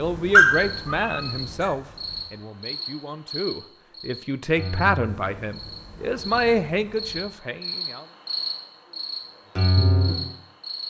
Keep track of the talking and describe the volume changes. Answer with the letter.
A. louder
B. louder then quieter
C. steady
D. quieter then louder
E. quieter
D.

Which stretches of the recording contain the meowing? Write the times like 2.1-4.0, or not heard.
0.3-1.6.